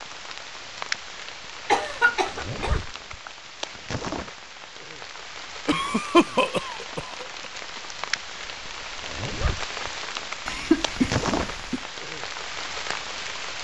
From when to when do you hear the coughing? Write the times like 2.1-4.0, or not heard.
1.6-2.8, 5.7-7.5, 10.4-11.8.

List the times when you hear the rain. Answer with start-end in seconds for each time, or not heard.
0.0-13.6.